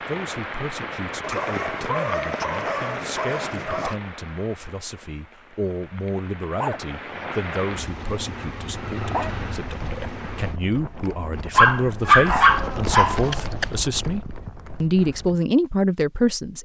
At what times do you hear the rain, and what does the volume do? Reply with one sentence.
You can hear the rain from 0.0 to 10.6 s, getting quieter then louder.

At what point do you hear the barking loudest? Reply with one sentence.
The volume of the barking peaks at 12 seconds.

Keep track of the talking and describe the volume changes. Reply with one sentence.
The loudness of the talking goes up.